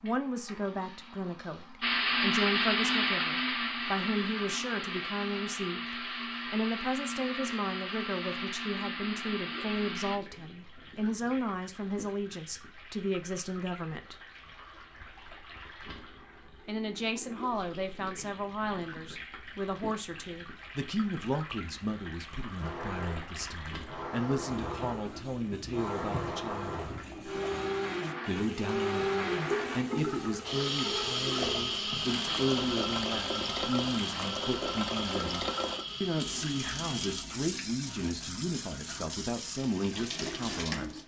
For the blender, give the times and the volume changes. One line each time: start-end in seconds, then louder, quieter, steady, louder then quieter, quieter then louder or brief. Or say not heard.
1.8-10.2 quieter
22.6-37.2 louder then quieter.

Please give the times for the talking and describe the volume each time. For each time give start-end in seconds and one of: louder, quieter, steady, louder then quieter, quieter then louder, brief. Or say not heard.
0.0-14.2 steady
16.6-26.9 steady
28.2-41.0 steady.